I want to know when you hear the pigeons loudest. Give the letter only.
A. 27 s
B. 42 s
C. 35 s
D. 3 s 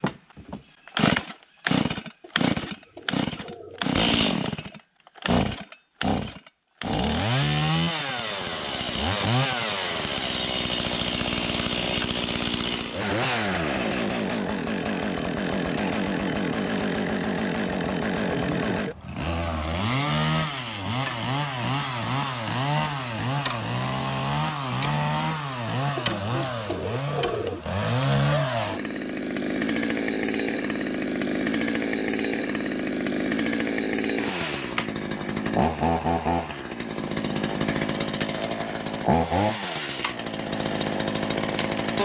A.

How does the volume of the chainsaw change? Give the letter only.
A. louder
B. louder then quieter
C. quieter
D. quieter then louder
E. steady
E.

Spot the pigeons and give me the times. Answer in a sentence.
You can hear the pigeons from 2.2 to 4.0 s and from 25.9 to 27.6 s.